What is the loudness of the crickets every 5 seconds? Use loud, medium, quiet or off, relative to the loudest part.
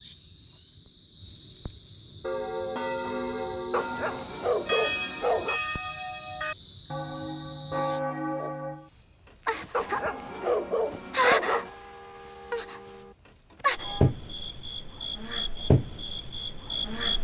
quiet, medium, loud, loud.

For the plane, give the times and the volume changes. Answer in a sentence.
You can't hear the plane here.